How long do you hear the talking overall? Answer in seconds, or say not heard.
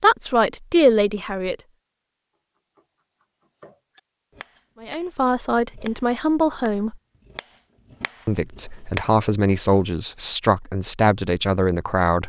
8 s.